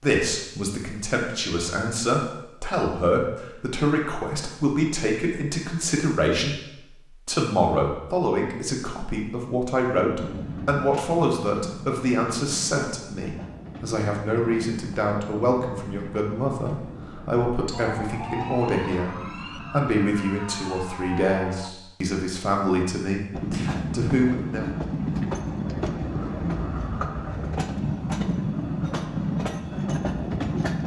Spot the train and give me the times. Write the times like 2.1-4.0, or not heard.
10.2-19.9, 23.3-30.8.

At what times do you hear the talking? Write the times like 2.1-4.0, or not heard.
0.0-6.6, 7.2-24.6.